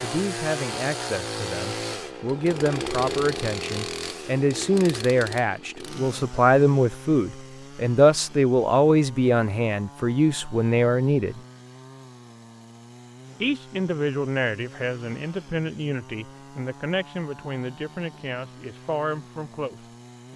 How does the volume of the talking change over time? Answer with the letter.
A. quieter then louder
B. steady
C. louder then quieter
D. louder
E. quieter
C.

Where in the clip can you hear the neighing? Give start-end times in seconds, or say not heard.
not heard.